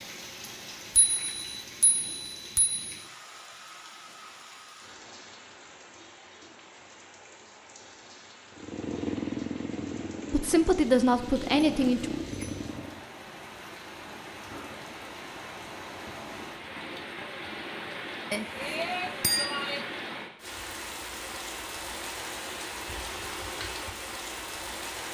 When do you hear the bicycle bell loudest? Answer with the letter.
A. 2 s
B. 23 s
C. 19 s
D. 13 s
C.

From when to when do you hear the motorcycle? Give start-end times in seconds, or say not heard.
8.6-13.0.